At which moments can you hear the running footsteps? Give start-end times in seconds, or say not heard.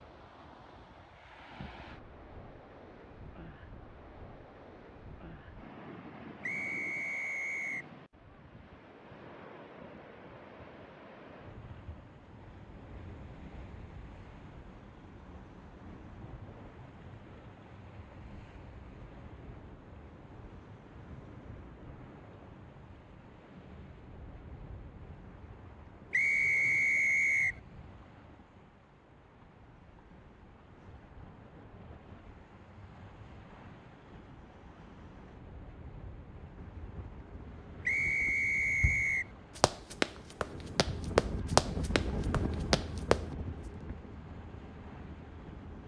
38.8-43.2.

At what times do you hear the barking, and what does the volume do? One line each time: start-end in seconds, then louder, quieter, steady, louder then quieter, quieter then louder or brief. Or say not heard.
not heard.